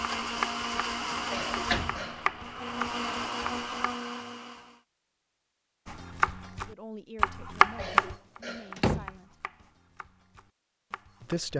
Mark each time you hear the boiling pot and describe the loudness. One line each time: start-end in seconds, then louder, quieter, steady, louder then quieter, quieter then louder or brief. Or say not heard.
not heard.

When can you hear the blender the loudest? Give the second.
1 s.